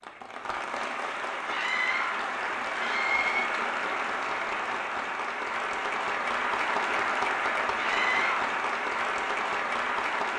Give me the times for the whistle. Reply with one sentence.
The whistle can't be heard in this clip.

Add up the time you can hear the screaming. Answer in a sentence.
The screaming can be heard for 3 seconds in total.